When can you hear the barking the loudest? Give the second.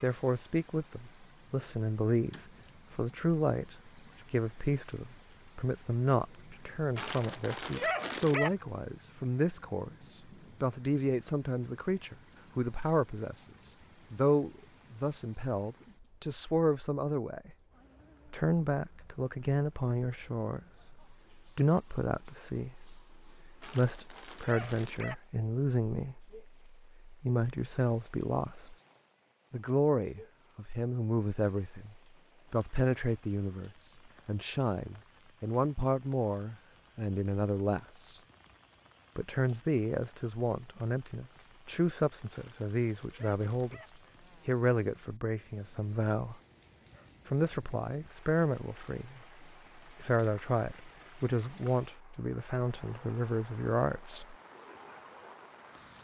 8 s.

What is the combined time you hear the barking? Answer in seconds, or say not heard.
5 s.